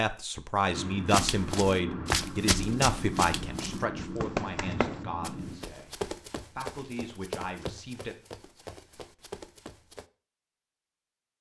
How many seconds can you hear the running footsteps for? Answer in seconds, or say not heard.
9 s.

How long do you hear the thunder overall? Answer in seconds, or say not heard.
5 s.